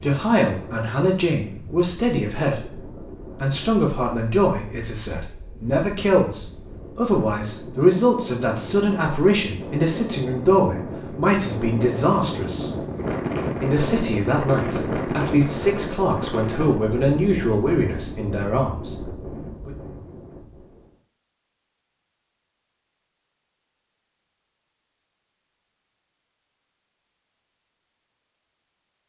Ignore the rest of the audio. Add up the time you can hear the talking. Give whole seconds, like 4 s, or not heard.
19 s.